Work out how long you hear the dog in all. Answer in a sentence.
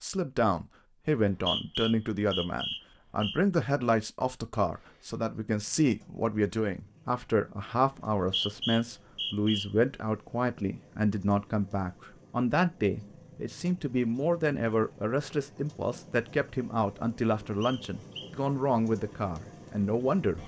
You can't hear the dog here.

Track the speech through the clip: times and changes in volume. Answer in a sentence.
You can hear the speech from 0.0 to 20.4 s, at a steady volume.